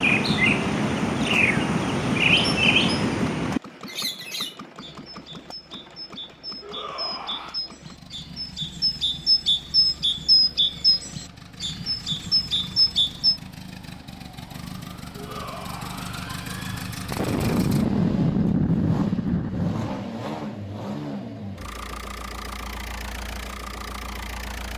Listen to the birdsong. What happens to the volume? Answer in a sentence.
The volume of the birdsong goes down, then up.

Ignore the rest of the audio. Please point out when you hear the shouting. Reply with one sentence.
The shouting can be heard from 6.6 to 7.6 s and from 15.2 to 16.9 s.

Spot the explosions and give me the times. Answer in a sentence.
The explosions can be heard from 17.1 to 20.0 s.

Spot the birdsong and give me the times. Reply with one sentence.
The birdsong can be heard from 0.0 to 13.4 s.